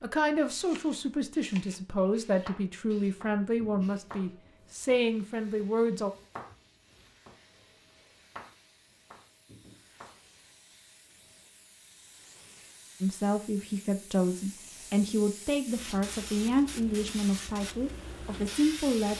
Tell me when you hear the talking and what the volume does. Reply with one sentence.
The talking can be heard from 0.0 to 6.1 s, at a steady volume; and from 13.0 to 19.1 s, at a steady volume.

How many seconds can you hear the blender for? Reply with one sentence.
The blender can't be heard in this clip.